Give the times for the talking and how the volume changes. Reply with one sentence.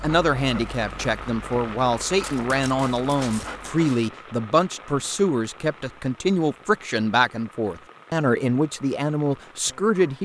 The talking can be heard from 0.0 to 10.2 s, at a steady volume.